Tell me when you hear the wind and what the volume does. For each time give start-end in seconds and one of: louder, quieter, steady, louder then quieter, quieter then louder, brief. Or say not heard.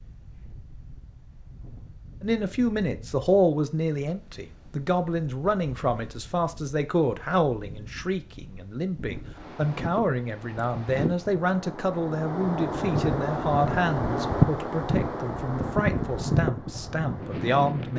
0.0-17.9 louder.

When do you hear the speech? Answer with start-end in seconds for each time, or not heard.
2.2-17.9.